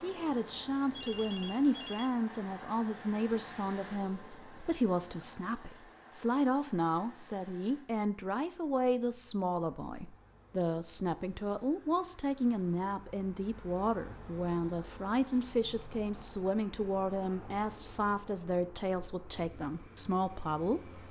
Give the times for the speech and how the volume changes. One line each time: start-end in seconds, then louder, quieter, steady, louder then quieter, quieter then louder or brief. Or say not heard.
0.0-21.0 steady.